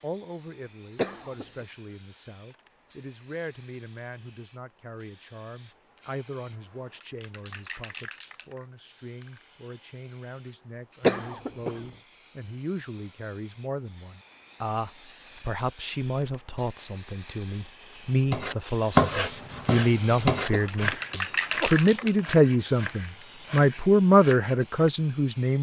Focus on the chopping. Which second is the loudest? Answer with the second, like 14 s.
19 s.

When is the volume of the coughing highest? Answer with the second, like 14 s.
11 s.